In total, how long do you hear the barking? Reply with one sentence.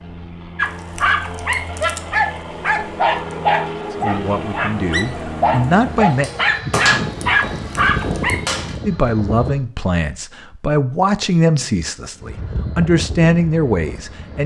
You can hear the barking for 8 seconds altogether.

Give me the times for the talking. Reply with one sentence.
You can hear the talking from 4.0 to 6.3 s and from 8.8 to 14.4 s.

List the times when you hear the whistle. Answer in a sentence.
The whistle can't be heard in this clip.